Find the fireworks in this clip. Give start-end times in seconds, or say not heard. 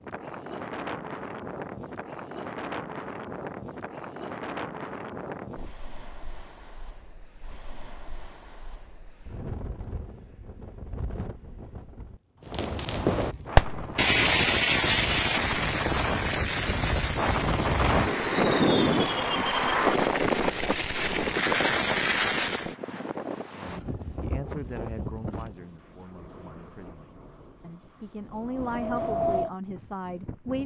12.4-22.8.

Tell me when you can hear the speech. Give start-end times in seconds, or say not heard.
23.5-30.6.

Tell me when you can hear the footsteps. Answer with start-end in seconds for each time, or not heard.
not heard.